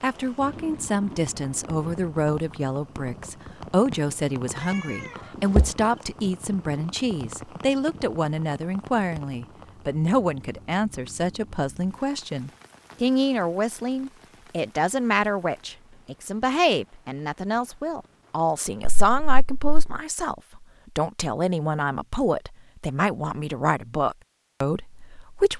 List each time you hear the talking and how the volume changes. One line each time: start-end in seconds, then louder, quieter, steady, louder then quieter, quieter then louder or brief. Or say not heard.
0.0-25.5 steady.